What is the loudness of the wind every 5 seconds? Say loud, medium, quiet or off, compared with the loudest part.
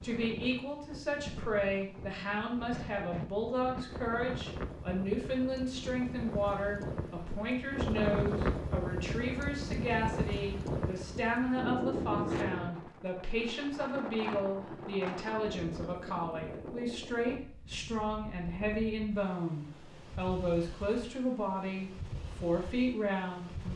medium, loud, loud, medium, medium.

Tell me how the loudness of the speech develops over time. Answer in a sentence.
The volume of the speech stays about the same.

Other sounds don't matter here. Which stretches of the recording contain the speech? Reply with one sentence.
The speech can be heard from 0.0 to 23.7 s.